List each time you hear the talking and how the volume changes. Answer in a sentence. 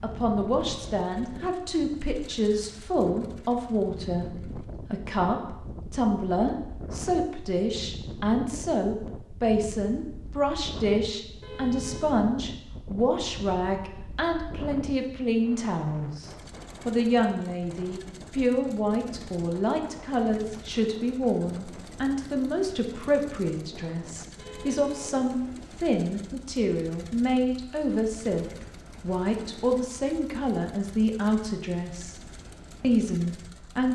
You can hear the talking from 0.0 to 32.1 s, at a steady volume; and briefly from 32.8 to 33.9 s.